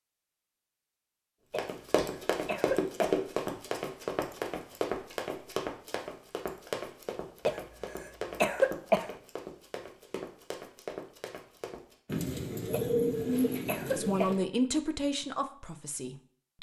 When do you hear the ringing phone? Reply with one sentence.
You can't hear the ringing phone here.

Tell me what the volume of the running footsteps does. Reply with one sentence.
The loudness of the running footsteps goes down.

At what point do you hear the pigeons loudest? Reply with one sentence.
The loudest moment of the pigeons is at 13 seconds.